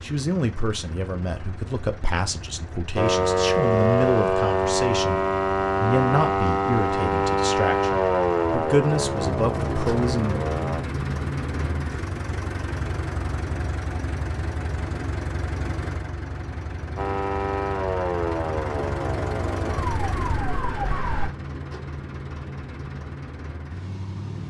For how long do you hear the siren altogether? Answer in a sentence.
The siren can be heard for 12 seconds in total.